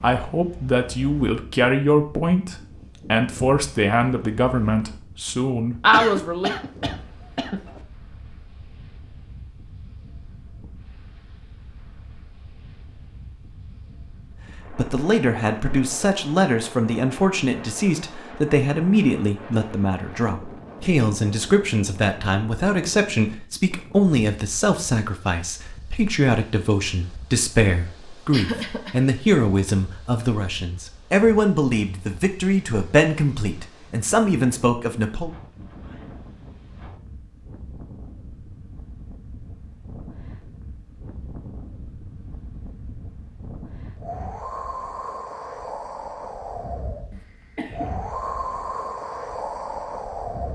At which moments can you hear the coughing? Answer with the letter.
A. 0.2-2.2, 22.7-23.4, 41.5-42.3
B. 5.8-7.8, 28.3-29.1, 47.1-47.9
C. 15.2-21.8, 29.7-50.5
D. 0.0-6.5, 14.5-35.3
B.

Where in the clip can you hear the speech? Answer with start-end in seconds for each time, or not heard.
0.0-6.5, 14.5-35.3.